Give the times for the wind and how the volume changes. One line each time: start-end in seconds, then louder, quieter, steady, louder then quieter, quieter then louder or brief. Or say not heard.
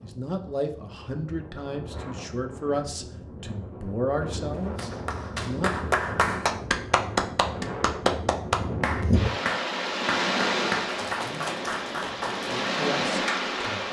0.0-13.8 louder.